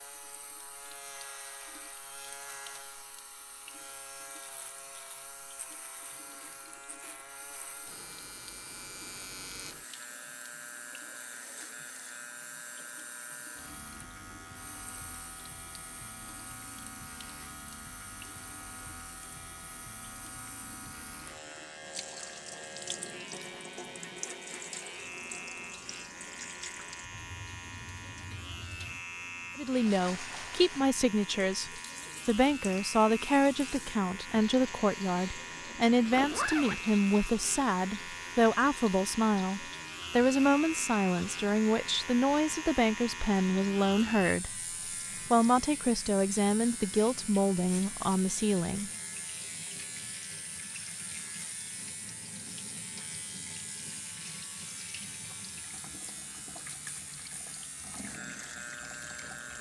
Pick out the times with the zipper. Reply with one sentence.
The zipper can be heard from 35.5 to 36.8 s.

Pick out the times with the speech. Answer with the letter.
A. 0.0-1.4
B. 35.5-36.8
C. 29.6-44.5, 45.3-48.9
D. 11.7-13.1
C.